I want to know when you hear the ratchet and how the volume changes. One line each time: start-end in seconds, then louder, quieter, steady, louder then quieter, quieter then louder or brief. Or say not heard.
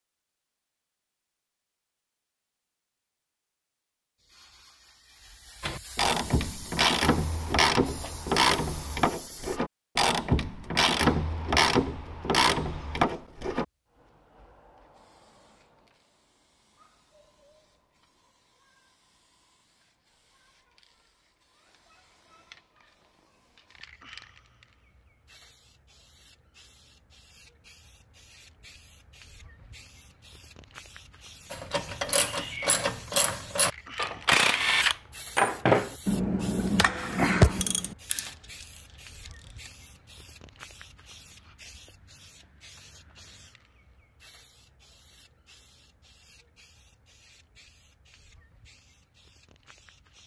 5.6-13.7 steady
31.5-39.7 louder then quieter.